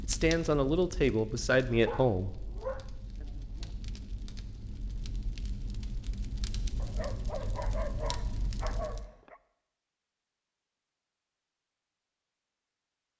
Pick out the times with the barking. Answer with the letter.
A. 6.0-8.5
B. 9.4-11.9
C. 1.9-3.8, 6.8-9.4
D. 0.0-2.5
C.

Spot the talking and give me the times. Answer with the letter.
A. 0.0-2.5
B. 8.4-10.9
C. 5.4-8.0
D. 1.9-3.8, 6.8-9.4
A.